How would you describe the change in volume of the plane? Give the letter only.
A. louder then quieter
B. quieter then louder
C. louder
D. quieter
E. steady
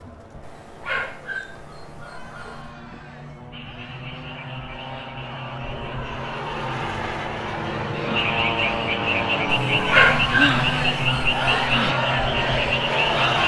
C.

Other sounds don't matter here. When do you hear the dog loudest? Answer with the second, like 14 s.
10 s.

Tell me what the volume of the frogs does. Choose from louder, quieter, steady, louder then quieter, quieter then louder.
louder.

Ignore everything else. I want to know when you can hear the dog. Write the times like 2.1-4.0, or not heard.
0.4-2.7, 9.4-11.8.